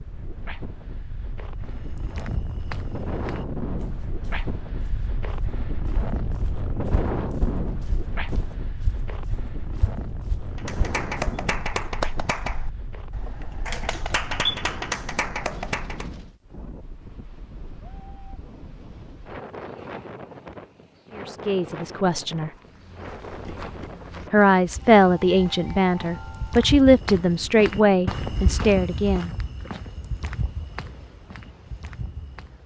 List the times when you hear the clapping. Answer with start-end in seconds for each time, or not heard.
10.6-16.1.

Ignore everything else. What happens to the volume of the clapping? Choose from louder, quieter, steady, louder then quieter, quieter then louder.
quieter then louder.